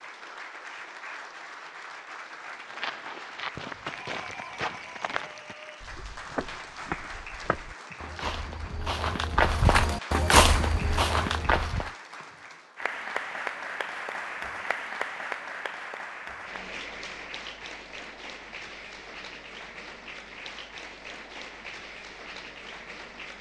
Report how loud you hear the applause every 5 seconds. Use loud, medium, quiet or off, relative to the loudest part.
medium, medium, loud, loud, medium.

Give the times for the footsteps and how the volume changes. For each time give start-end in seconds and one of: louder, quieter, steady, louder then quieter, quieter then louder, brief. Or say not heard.
2.5-11.9 louder.